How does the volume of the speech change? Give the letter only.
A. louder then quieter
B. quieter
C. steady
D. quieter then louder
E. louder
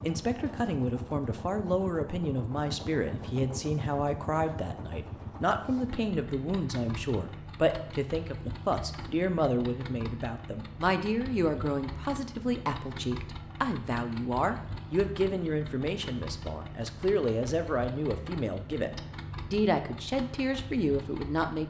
C.